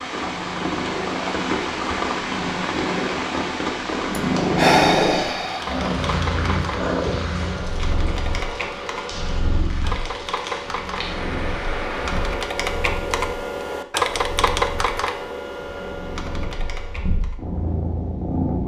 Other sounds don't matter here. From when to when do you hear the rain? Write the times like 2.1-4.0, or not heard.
0.0-12.6.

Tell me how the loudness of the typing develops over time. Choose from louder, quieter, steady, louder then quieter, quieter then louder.
louder then quieter.